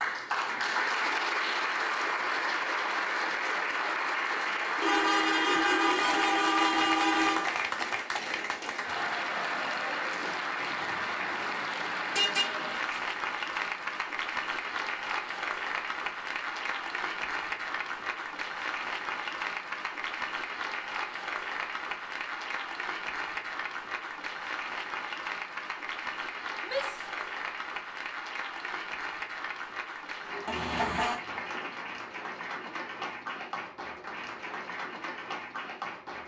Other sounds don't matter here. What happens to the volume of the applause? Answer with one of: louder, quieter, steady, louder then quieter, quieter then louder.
quieter.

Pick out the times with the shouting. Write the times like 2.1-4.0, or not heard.
26.6-27.2.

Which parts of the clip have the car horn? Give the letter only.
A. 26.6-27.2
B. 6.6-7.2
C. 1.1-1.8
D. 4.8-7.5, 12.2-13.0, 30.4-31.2
D.